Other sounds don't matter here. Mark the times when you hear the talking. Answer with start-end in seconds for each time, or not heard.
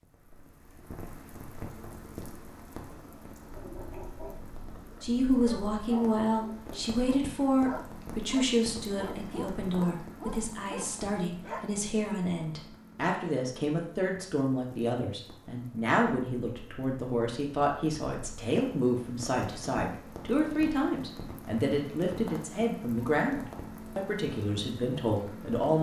5.0-25.7.